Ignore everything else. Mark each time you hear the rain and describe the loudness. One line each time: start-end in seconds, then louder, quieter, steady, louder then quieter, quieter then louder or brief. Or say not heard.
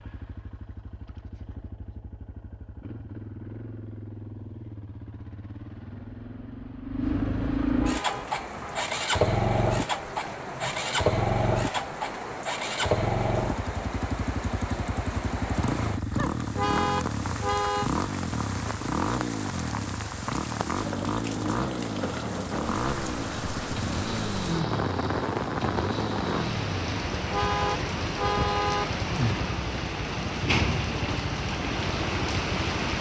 7.9-32.9 louder.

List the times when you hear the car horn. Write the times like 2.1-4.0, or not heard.
7.8-8.8, 16.6-17.9, 27.3-28.9.